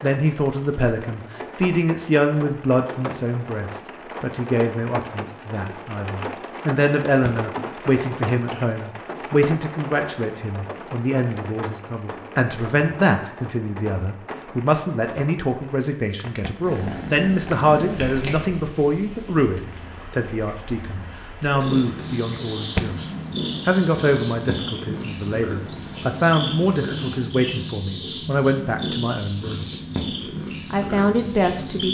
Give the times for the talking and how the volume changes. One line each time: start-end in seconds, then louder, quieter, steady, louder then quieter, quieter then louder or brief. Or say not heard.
0.0-31.8 steady.